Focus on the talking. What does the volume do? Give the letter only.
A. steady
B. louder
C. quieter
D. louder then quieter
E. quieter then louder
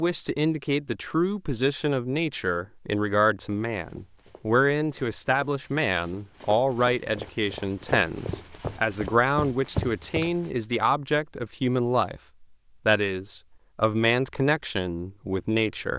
A.